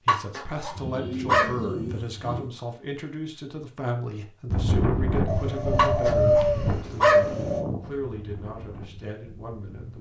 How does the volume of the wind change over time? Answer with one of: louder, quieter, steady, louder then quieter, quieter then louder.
quieter.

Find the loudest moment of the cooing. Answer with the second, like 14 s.
6 s.